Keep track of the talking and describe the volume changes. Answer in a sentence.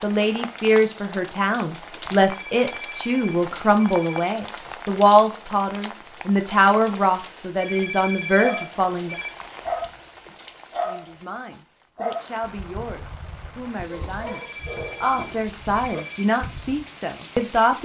The volume of the talking goes down, then up.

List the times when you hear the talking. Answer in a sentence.
You can hear the talking from 0.0 to 9.2 s and from 10.8 to 17.8 s.